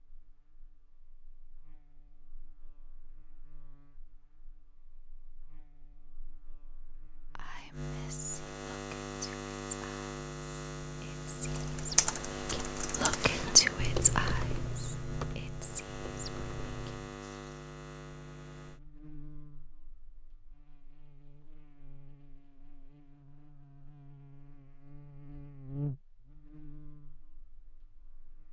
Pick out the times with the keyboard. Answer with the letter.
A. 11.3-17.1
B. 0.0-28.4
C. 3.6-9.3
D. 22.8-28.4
A.